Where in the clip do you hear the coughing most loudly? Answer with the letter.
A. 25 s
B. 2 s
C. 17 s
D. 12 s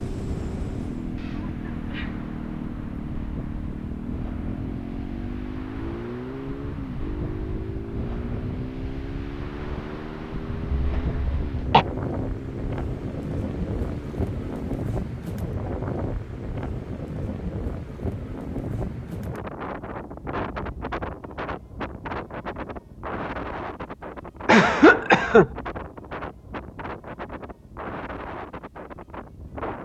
A.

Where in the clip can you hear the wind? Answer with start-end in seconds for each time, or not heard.
0.1-29.7.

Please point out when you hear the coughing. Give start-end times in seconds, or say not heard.
1.1-2.2, 10.8-11.8, 24.4-25.5.